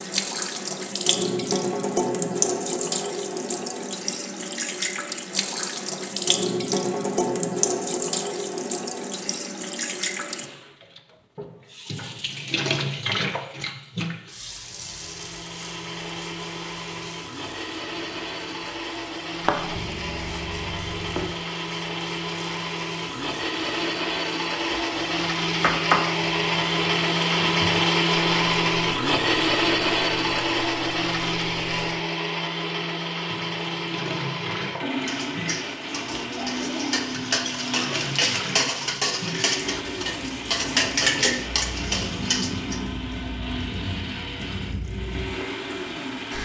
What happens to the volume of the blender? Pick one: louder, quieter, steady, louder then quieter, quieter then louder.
louder then quieter.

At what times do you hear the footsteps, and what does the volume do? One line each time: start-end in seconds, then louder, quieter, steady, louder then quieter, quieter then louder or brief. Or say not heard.
not heard.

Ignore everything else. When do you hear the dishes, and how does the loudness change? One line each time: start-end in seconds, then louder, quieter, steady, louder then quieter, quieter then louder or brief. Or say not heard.
35.0-42.8 louder.